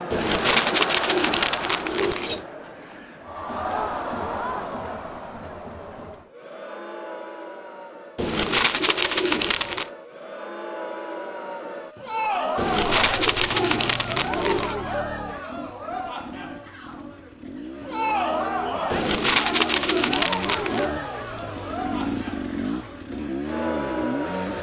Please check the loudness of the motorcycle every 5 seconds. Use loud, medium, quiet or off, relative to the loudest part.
off, off, medium, medium, loud.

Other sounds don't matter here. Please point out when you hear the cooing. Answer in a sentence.
You can hear the cooing from 0.1 to 2.5 s, from 8.2 to 9.9 s, from 12.6 to 14.8 s and from 18.9 to 20.9 s.